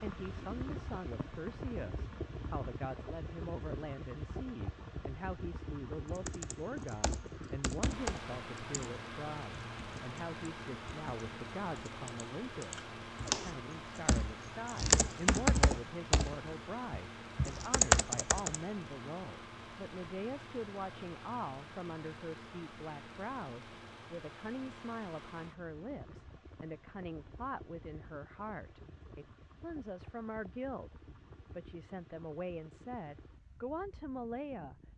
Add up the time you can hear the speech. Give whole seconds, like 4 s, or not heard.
34 s.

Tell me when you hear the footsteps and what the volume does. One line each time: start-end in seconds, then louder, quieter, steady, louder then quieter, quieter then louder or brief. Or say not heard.
not heard.